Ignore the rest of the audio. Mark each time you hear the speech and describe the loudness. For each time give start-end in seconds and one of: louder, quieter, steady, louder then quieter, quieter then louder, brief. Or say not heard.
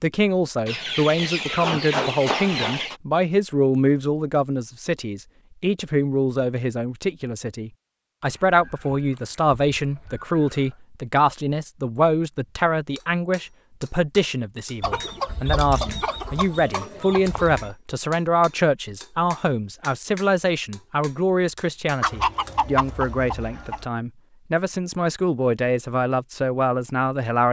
0.0-27.4 steady.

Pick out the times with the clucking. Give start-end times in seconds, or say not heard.
0.7-3.0, 8.3-10.8, 14.8-17.8, 22.0-23.9.